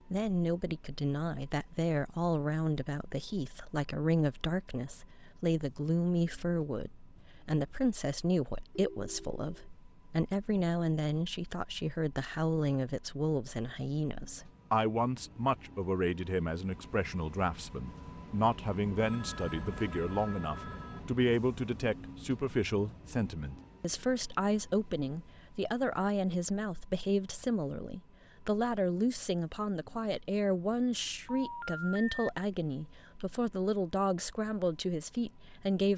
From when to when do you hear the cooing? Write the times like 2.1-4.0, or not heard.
not heard.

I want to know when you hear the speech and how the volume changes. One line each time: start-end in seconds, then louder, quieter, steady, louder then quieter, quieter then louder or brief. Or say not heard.
0.1-35.9 steady.